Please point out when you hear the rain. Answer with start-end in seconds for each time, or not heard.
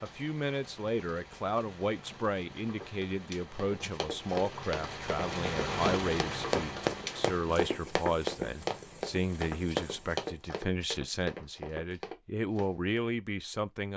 0.0-10.2.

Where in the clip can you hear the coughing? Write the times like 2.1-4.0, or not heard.
not heard.